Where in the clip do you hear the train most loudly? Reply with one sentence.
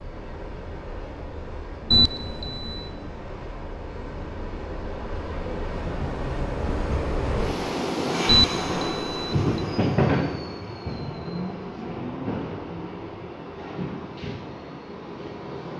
The volume of the train peaks at 10 seconds.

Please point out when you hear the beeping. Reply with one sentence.
The beeping can be heard from 1.9 to 2.9 s and from 8.2 to 9.4 s.